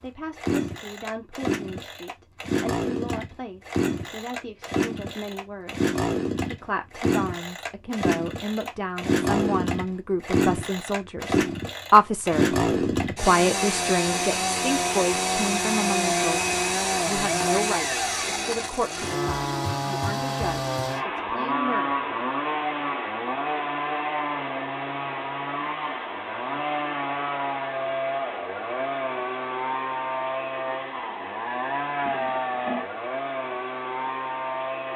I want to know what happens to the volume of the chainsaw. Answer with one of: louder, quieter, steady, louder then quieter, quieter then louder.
steady.